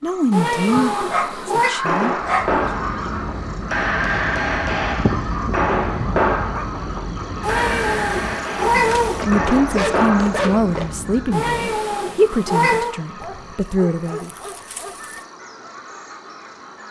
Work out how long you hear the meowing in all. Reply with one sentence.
The meowing can be heard for 5 seconds in total.